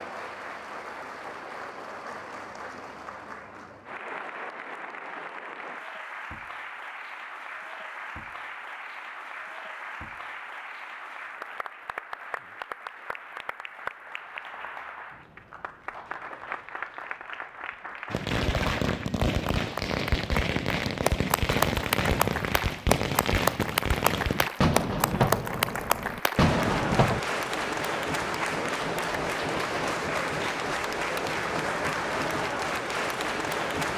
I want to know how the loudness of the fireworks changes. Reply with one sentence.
The loudness of the fireworks stays about the same.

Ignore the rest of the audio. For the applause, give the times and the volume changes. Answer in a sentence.
The applause can be heard from 0.0 to 33.9 s, getting louder.